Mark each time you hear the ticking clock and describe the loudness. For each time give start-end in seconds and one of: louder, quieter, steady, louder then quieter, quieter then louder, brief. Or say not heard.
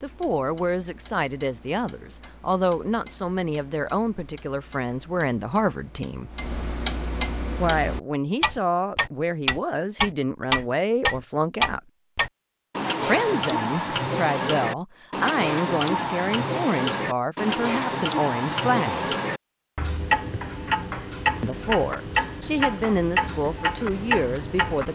0.0-24.9 louder.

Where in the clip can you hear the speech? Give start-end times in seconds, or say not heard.
0.0-6.3, 7.5-11.8, 13.0-19.1, 21.4-24.9.